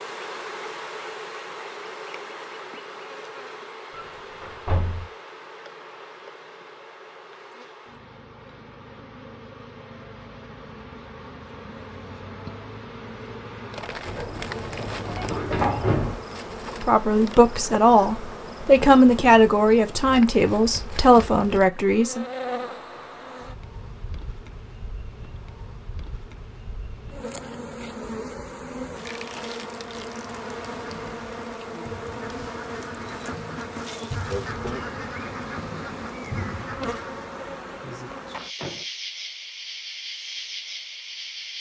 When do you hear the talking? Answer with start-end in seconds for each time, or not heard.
16.8-22.2.